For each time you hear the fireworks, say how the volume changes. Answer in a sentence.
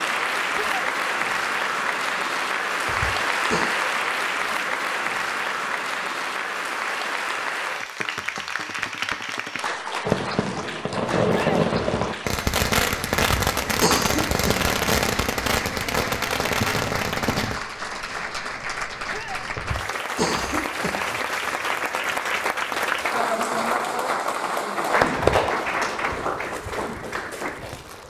The fireworks can be heard from 10.0 to 17.6 s, at a steady volume.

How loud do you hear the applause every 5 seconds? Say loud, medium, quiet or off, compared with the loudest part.
loud, loud, medium, medium, loud, loud.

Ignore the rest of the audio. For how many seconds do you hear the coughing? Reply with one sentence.
You can hear the coughing for 4 seconds altogether.